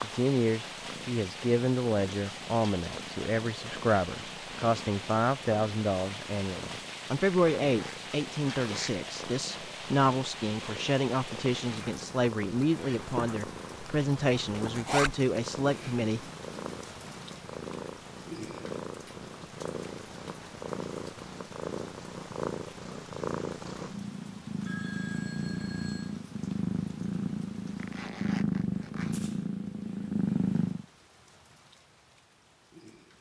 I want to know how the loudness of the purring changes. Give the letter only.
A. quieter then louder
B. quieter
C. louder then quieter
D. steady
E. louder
E.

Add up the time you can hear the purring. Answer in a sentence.
The purring can be heard for 31 seconds in total.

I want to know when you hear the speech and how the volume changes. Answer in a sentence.
You can hear the speech from 0.0 to 16.2 s, at a steady volume.